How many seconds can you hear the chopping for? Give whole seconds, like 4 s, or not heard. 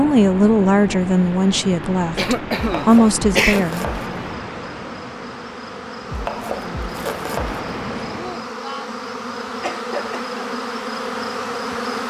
4 s.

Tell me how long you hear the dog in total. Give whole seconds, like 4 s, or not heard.
not heard.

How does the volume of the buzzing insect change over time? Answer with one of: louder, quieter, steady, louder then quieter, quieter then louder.
louder.